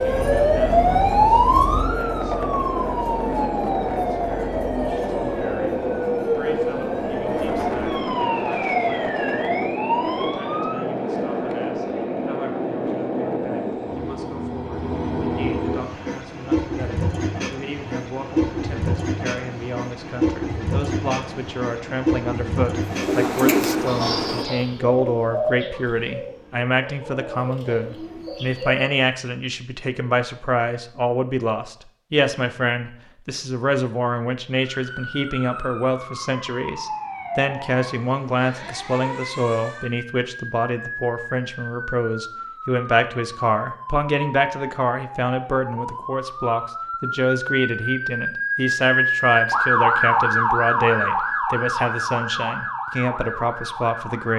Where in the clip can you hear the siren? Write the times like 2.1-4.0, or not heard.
0.0-10.8, 34.6-54.3.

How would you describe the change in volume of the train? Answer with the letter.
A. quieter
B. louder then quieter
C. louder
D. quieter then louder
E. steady
E.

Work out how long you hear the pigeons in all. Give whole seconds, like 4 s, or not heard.
6 s.